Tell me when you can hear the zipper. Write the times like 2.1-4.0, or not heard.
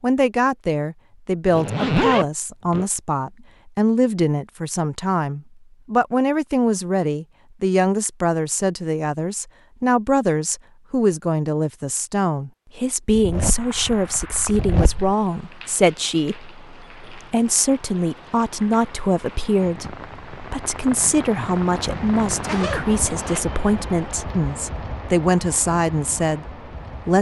1.4-2.9, 13.2-15.2, 22.4-23.4.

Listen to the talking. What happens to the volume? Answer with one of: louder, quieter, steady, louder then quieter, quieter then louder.
steady.